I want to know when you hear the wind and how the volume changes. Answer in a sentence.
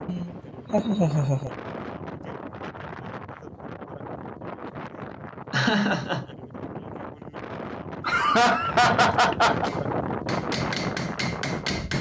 The wind can be heard from 0.0 to 11.9 s, getting louder.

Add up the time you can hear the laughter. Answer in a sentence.
The laughter can be heard for 4 seconds in total.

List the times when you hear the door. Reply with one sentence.
The door can't be heard in this clip.